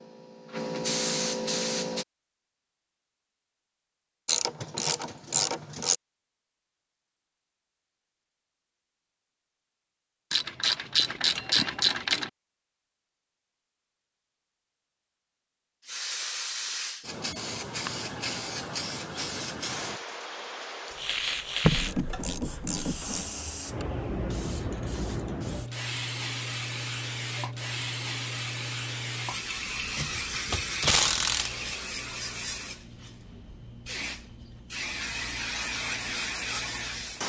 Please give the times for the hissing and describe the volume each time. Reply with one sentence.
The hissing can be heard briefly from 0.0 to 2.0 s; and from 15.8 to 37.2 s, at a steady volume.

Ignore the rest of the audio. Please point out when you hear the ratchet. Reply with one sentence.
You can hear the ratchet from 4.2 to 6.0 s, from 10.3 to 12.3 s, from 21.6 to 23.3 s and from 29.9 to 31.9 s.